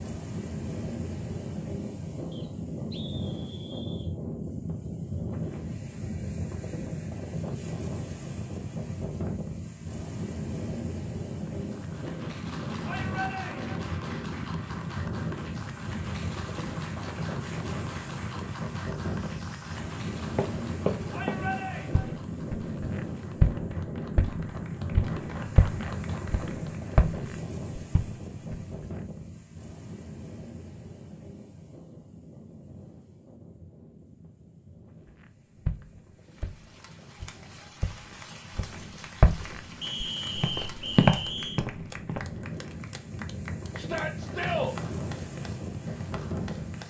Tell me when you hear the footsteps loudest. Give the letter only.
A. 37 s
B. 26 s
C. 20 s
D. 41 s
D.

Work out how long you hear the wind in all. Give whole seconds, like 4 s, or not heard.
47 s.